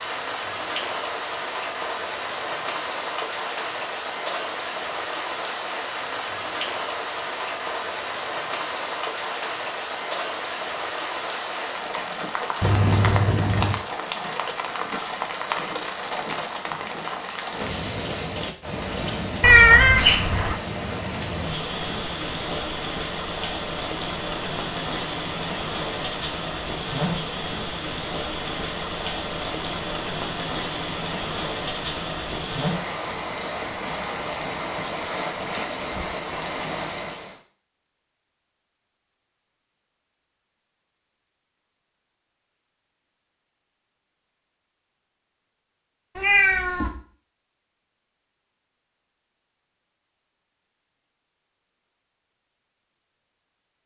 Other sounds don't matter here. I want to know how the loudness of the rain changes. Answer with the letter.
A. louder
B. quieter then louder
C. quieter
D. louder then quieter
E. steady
E.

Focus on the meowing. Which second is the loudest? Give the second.
20 s.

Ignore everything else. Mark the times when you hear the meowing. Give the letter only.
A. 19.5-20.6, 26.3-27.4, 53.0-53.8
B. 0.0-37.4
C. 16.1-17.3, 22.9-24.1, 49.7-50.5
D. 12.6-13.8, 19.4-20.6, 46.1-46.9
D.